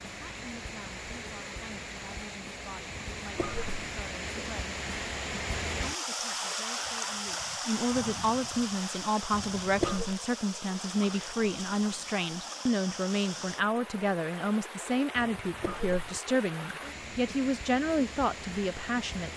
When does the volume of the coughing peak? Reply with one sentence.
The volume of the coughing peaks at 10 seconds.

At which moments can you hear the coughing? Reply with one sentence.
The coughing can be heard from 3.0 to 3.9 s, from 9.3 to 10.2 s and from 15.2 to 16.2 s.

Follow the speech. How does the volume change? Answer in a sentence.
The volume of the speech goes up.